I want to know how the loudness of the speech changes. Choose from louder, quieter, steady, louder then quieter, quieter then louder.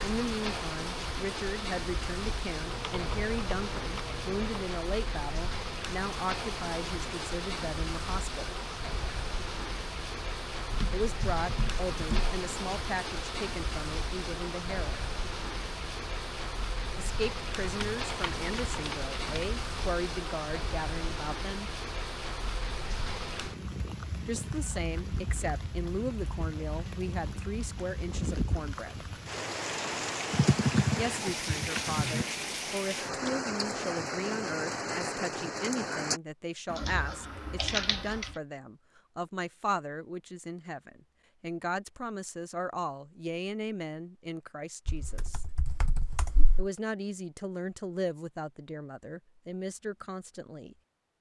steady.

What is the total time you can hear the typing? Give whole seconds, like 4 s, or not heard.
11 s.